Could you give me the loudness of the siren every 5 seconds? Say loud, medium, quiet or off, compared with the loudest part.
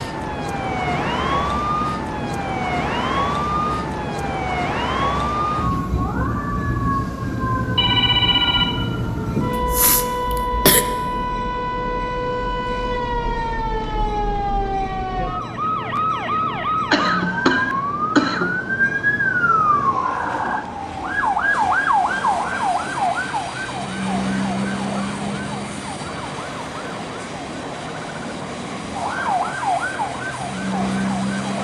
loud, loud, loud, loud, loud, medium, loud.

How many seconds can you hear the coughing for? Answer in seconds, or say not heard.
3 s.